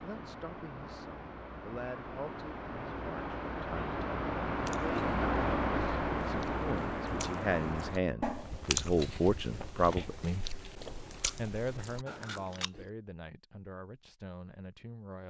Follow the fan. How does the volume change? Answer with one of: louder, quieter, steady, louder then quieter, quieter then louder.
louder then quieter.